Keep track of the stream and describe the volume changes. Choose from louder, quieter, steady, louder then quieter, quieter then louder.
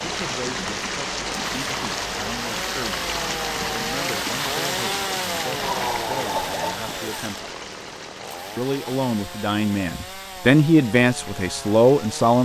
quieter.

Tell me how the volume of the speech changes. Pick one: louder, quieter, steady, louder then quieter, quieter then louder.
louder.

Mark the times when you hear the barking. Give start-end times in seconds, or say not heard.
5.5-7.0.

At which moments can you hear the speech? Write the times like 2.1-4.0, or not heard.
0.0-7.5, 8.6-12.3.